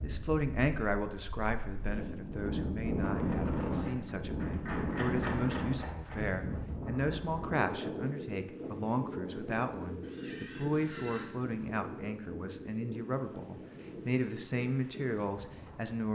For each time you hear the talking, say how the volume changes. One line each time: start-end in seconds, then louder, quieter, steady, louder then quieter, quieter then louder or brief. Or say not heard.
0.0-16.1 steady.